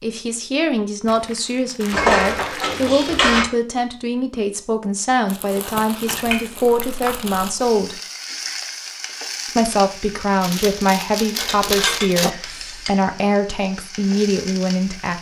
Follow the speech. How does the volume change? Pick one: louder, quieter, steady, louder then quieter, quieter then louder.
steady.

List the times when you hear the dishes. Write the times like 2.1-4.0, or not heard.
1.9-3.5, 6.0-7.2, 11.3-12.9.